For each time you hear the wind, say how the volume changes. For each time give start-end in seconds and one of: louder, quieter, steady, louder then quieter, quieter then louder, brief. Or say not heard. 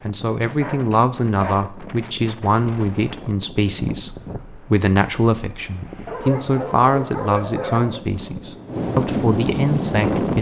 0.0-10.3 louder.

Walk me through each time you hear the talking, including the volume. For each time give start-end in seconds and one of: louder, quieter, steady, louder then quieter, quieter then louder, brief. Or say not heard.
0.0-10.3 steady.